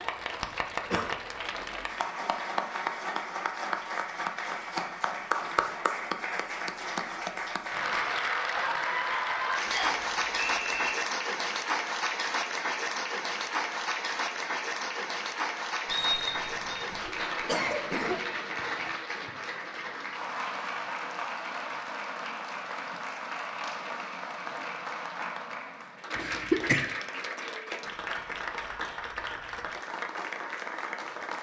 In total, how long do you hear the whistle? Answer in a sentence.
The whistle can be heard for 2 seconds in total.